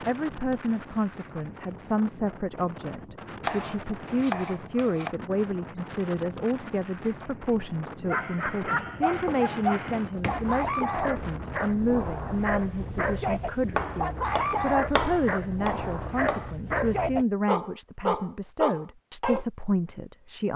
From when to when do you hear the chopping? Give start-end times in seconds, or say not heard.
3.4-5.2, 8.6-10.5, 13.8-16.5.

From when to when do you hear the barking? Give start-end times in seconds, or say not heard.
8.1-19.4.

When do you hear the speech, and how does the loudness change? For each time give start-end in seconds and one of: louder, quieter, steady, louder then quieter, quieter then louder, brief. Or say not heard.
0.1-20.5 steady.